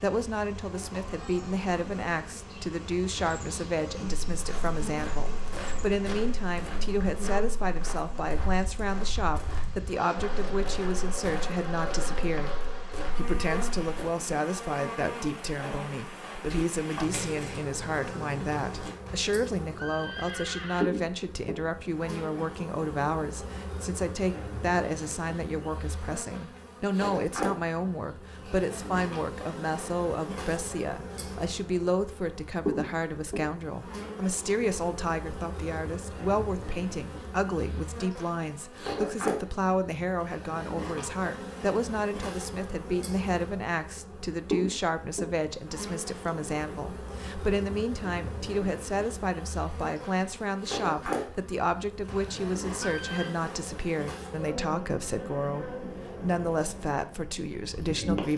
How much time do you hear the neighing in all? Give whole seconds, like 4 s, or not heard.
3 s.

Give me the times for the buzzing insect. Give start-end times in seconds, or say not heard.
0.0-58.3.